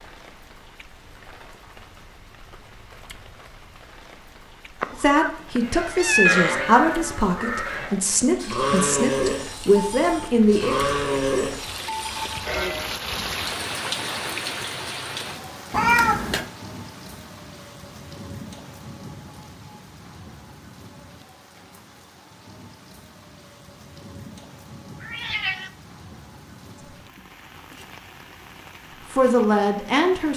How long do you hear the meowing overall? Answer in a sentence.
The meowing can be heard for 3 seconds in total.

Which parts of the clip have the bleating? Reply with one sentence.
You can hear the bleating from 5.5 to 12.8 s.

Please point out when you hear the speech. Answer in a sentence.
You can hear the speech from 4.9 to 10.8 s and from 29.1 to 30.3 s.